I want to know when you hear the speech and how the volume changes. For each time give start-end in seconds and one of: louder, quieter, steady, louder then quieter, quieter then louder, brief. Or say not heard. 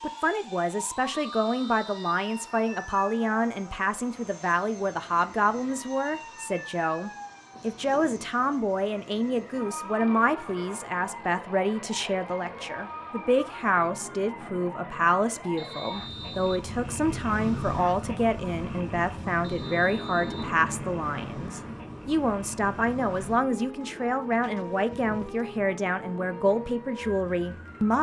0.0-27.9 steady.